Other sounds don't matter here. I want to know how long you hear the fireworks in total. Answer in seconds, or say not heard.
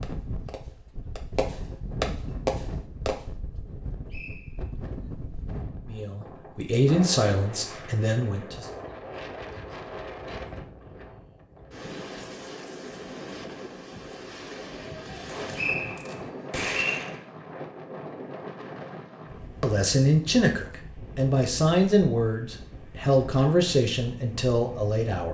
5 s.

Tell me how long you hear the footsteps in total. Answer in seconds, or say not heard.
not heard.